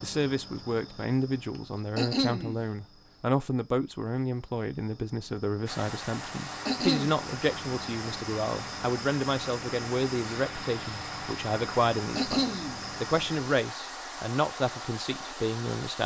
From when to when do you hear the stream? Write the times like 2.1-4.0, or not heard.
5.7-16.0.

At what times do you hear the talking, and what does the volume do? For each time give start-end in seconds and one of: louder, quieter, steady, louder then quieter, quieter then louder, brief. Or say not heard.
0.0-16.0 steady.